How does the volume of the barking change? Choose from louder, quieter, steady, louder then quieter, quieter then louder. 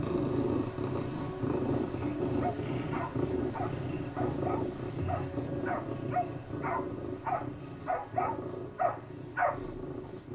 louder.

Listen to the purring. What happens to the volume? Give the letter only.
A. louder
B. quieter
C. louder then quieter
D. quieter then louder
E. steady
B.